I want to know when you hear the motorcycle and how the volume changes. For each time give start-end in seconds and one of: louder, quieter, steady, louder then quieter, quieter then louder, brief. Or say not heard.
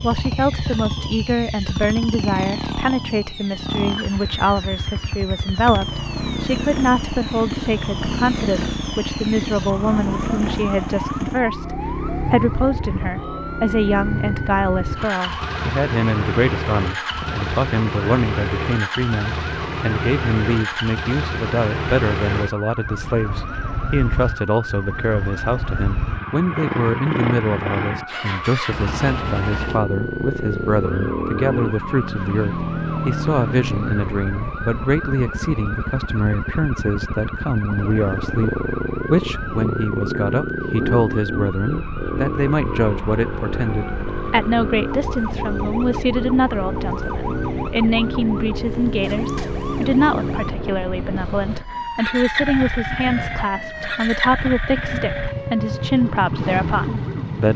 0.0-57.5 steady.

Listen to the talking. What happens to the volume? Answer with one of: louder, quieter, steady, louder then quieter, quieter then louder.
steady.